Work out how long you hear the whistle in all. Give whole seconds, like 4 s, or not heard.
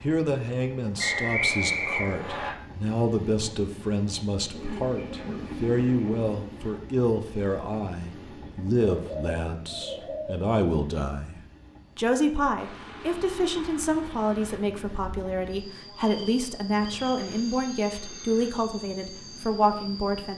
3 s.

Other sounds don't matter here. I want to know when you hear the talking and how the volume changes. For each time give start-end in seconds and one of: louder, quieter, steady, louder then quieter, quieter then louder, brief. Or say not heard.
0.0-20.3 steady.